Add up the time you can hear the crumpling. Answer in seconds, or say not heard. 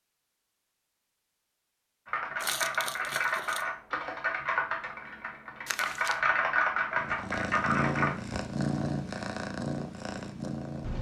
2 s.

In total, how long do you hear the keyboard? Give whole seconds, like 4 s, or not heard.
6 s.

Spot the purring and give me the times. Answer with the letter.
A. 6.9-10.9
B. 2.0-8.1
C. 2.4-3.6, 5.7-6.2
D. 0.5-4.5
A.